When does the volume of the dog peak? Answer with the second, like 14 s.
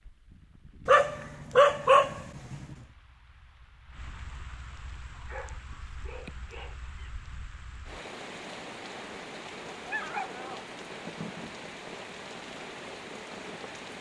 2 s.